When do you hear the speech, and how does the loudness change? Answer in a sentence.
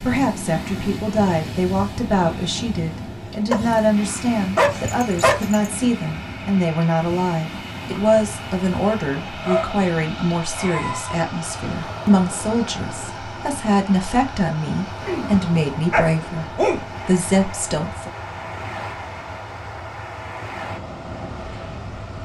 The speech can be heard from 0.0 to 18.1 s, at a steady volume.